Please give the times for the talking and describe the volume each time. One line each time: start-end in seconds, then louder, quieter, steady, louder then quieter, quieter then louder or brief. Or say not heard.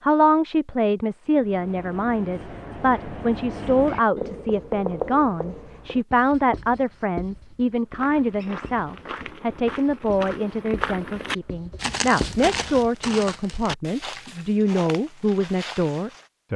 0.0-16.5 steady.